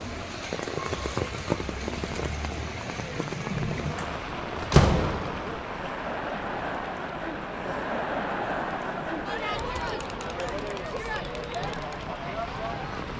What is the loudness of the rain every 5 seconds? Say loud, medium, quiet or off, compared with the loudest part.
loud, medium, medium.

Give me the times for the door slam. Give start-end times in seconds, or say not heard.
4.0-5.5.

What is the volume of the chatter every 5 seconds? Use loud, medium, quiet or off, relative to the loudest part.
medium, loud, loud.